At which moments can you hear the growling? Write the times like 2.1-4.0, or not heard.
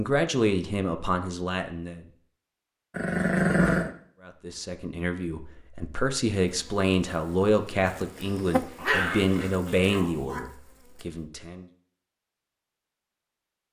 2.9-3.9, 8.8-10.4.